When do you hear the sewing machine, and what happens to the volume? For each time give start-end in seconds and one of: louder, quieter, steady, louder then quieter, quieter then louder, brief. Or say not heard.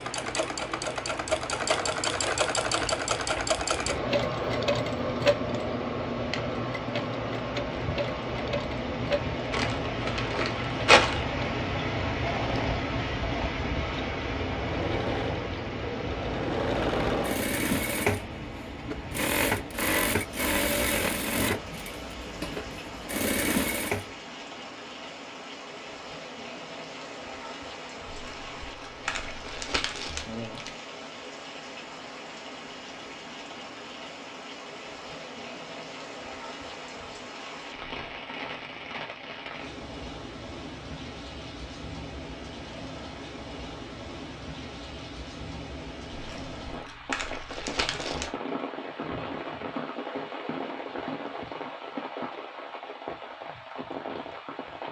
0.0-24.1 quieter then louder.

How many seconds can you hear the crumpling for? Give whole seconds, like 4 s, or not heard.
7 s.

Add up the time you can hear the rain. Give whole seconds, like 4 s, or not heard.
55 s.